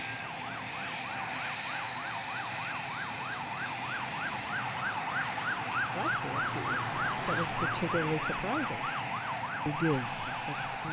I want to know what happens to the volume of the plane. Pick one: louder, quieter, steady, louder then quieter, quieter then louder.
steady.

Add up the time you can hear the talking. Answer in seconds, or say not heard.
4 s.